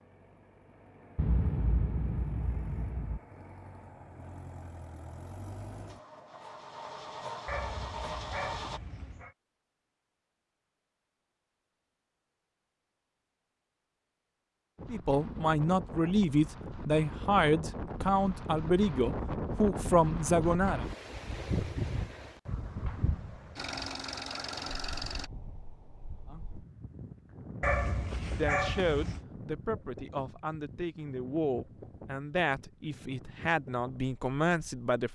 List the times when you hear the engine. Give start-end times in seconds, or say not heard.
0.0-8.8, 23.6-25.3.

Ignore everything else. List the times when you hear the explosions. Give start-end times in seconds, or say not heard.
1.1-3.2, 22.9-23.7.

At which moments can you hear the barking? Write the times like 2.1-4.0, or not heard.
7.5-9.3, 27.6-29.2.